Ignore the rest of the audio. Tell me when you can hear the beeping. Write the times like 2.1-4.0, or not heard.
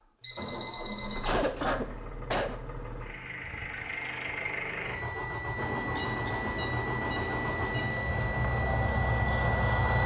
0.2-1.7, 5.5-8.0.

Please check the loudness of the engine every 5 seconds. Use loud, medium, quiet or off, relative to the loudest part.
medium, loud.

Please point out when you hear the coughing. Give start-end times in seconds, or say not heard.
1.2-2.6, 6.0-6.5.